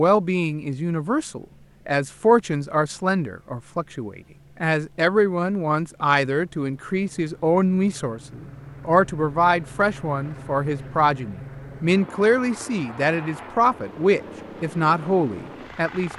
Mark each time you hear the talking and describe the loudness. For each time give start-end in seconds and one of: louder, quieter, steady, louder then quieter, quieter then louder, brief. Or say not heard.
0.0-16.1 steady.